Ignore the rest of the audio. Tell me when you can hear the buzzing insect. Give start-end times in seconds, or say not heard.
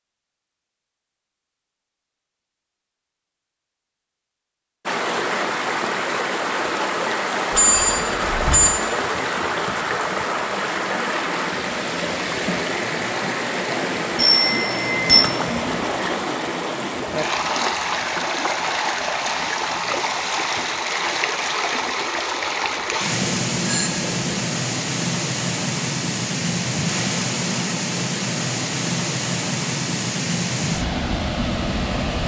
not heard.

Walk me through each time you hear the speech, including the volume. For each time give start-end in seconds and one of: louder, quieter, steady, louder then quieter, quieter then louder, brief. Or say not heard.
not heard.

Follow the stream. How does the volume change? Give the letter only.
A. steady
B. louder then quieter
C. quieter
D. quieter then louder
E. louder
A.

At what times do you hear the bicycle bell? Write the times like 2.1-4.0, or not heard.
7.5-8.7, 14.2-15.2, 23.2-24.3.